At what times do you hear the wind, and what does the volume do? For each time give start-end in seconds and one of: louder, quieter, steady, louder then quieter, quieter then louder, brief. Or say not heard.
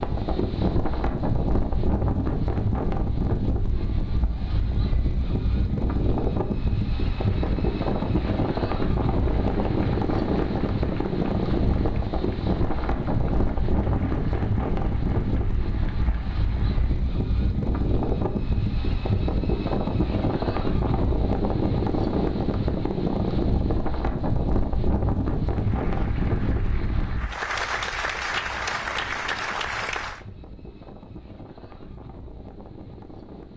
0.0-33.5 quieter.